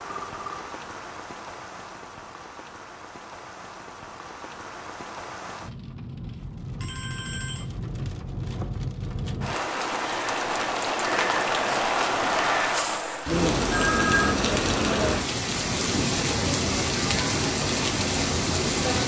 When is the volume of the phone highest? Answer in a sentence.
The volume of the phone peaks at 14 seconds.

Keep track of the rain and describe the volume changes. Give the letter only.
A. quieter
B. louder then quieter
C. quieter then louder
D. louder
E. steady
D.